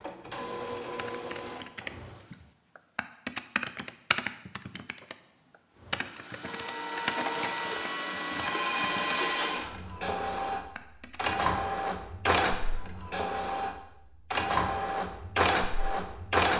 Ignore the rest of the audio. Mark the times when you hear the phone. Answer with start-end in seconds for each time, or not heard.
8.4-9.6.